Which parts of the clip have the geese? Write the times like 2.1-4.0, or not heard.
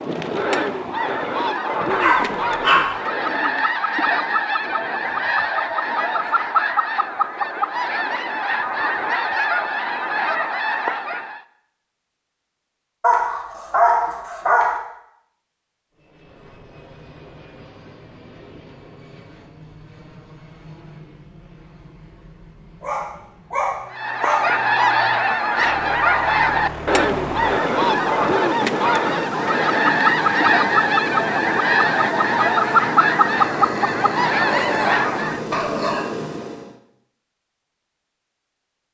0.0-11.4, 23.9-35.5.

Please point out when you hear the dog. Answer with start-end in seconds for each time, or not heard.
1.9-3.0, 13.0-14.8, 22.8-24.5, 33.4-36.0.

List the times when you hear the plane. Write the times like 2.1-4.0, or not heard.
15.9-36.8.